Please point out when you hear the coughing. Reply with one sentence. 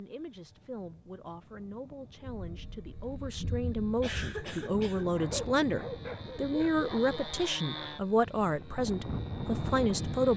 The coughing can be heard from 4.0 to 5.5 s.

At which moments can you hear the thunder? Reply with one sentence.
The thunder can be heard from 2.2 to 4.4 s.